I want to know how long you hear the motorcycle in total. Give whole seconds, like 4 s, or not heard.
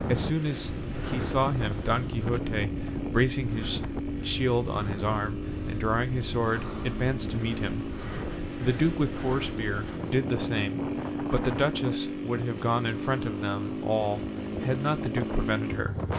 16 s.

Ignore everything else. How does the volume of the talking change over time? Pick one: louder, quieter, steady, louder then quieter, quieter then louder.
steady.